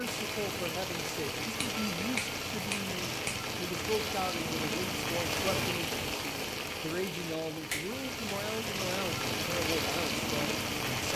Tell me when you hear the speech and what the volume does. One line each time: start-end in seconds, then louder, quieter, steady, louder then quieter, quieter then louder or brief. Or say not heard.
0.0-11.1 steady.